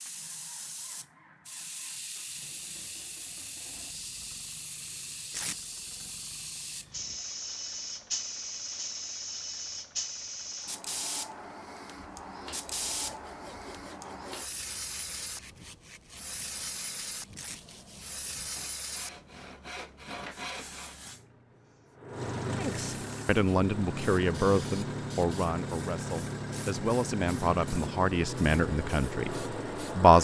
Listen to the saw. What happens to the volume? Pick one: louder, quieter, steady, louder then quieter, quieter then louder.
louder.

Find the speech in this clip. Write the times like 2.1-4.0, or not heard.
22.6-30.1.